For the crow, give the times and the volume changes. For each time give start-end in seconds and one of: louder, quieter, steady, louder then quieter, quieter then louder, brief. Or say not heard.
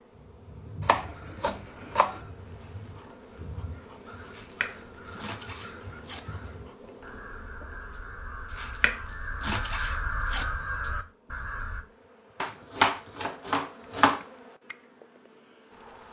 0.1-11.8 louder.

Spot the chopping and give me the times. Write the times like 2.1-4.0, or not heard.
0.8-2.2, 4.3-6.2, 8.6-10.4, 12.4-14.2.